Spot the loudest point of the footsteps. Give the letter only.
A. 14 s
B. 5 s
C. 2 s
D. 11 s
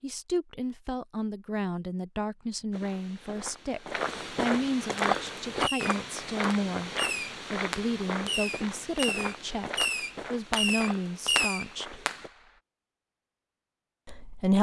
B.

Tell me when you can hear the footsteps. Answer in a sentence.
You can hear the footsteps from 2.7 to 12.3 s.